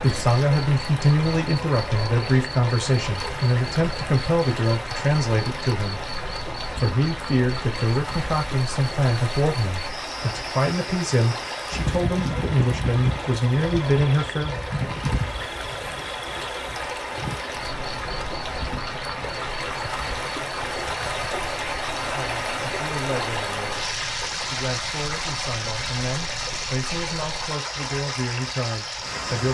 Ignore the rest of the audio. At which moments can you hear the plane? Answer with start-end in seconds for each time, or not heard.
not heard.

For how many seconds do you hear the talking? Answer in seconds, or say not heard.
21 s.